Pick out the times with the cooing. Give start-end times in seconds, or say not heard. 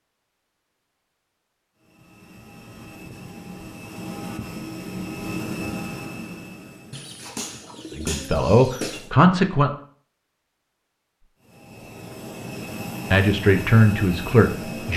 6.9-9.1.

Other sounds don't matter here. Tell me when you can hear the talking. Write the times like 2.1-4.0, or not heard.
8.0-9.7, 13.1-14.9.